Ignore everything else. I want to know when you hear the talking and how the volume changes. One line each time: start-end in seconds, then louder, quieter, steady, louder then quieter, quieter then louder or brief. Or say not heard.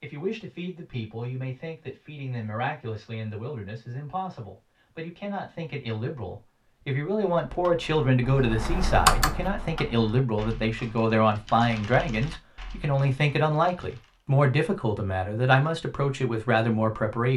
0.0-17.3 louder.